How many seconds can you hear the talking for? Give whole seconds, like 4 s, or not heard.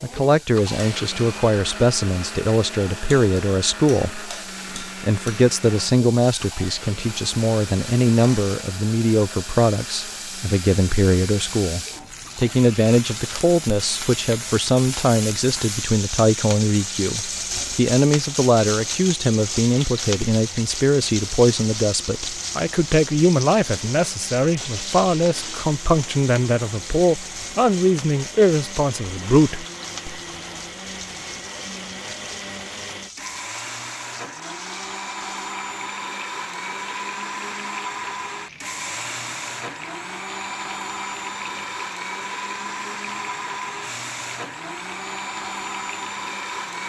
30 s.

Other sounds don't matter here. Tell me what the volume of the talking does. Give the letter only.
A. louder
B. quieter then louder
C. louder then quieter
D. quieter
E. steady
E.